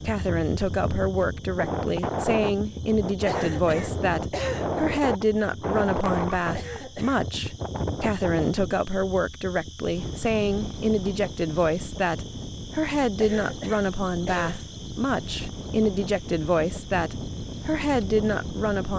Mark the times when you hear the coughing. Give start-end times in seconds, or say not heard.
3.2-4.7, 6.5-7.2, 13.2-14.7.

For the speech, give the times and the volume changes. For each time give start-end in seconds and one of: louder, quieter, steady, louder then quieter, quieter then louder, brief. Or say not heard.
0.0-18.9 steady.